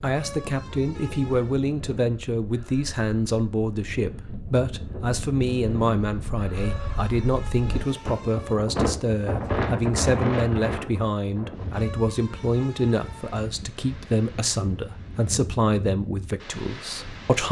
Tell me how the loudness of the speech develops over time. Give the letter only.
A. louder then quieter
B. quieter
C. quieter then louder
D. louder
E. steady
E.